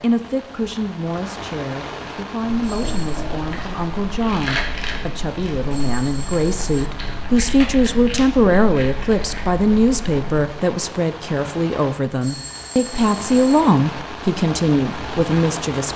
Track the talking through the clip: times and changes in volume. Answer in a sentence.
The talking can be heard from 0.0 to 15.9 s, getting louder.